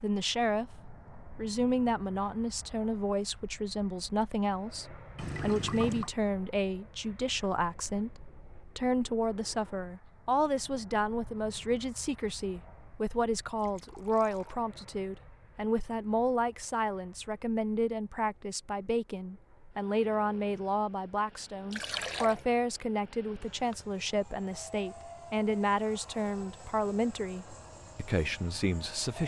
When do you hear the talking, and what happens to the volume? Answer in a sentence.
The talking can be heard from 0.0 to 29.2 s, at a steady volume.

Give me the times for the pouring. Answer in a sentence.
You can hear the pouring from 5.2 to 6.1 s, from 13.6 to 14.6 s and from 21.7 to 22.4 s.